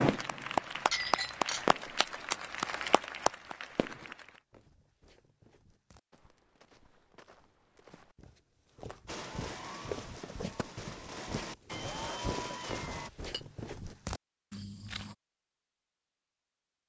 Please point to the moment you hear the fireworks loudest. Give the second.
2 s.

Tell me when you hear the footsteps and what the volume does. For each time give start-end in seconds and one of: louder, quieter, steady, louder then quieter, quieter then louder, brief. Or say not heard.
4.2-15.2 louder.